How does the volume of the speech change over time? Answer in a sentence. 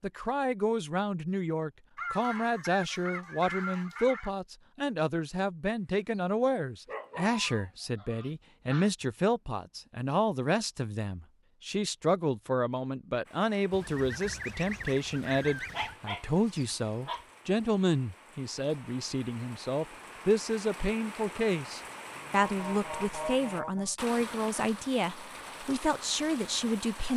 The volume of the speech stays about the same.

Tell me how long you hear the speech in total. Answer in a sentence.
The speech can be heard for 27 seconds in total.